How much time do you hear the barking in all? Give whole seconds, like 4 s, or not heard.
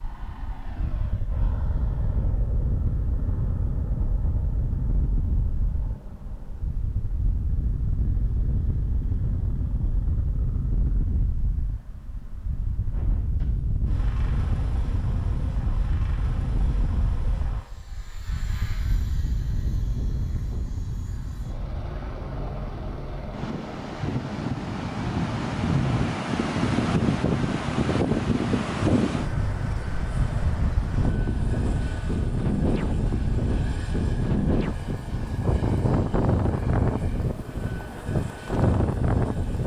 not heard.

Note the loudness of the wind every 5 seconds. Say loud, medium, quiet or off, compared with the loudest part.
medium, medium, medium, medium, medium, loud, loud, loud.